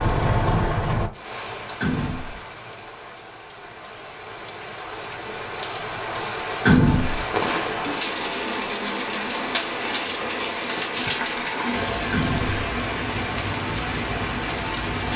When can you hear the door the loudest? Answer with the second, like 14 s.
7 s.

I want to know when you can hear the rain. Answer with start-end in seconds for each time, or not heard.
0.0-15.1.